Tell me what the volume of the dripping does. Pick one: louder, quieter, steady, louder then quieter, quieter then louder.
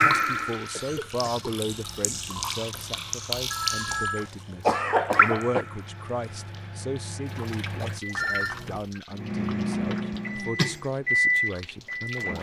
quieter.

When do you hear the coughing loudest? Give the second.
5 s.